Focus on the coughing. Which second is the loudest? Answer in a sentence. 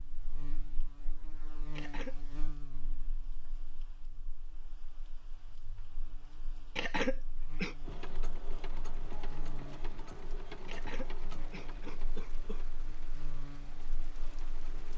The volume of the coughing peaks at 7 seconds.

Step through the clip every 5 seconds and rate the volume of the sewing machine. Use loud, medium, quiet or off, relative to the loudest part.
off, loud, loud.